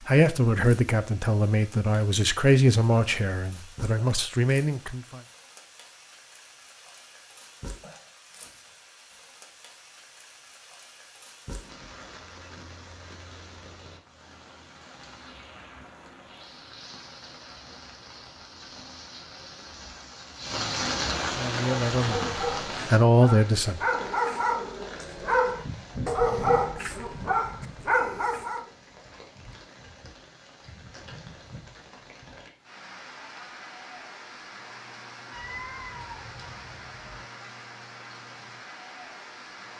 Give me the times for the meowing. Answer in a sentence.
You can hear the meowing from 35.3 to 37.2 s.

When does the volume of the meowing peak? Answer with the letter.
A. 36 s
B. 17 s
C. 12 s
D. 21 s
A.